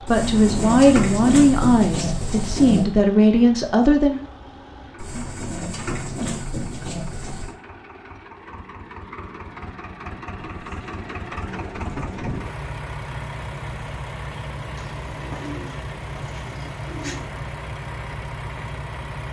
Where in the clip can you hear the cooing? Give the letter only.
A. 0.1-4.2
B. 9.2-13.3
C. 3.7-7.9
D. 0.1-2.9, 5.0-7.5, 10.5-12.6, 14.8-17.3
D.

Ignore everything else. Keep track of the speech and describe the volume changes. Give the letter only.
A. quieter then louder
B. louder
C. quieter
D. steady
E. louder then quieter
A.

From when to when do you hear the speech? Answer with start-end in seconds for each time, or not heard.
0.1-4.2.